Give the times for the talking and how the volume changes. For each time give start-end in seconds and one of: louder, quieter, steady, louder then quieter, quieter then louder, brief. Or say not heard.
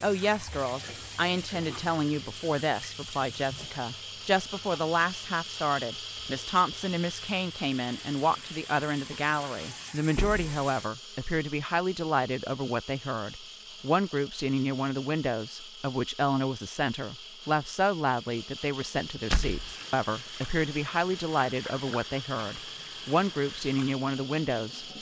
0.0-24.9 steady.